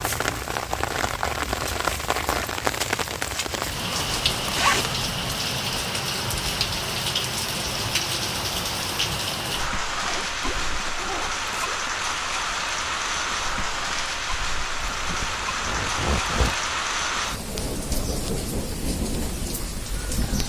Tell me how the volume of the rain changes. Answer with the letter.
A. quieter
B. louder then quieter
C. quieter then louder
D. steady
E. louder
D.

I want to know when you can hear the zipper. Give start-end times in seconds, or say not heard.
3.9-5.0, 9.9-11.9, 14.8-16.6.